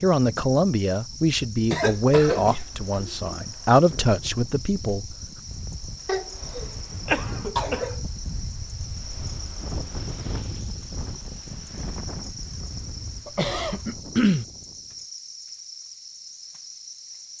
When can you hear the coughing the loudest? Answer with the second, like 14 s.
14 s.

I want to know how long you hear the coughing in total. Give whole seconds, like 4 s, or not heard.
5 s.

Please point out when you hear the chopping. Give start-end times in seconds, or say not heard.
not heard.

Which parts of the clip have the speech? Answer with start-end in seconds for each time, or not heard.
0.0-5.2.